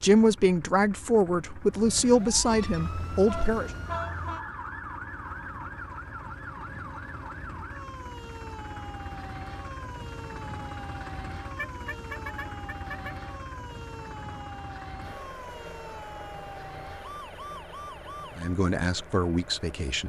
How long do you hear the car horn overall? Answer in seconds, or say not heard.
3 s.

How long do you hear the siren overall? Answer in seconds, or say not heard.
17 s.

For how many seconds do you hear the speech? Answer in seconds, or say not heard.
5 s.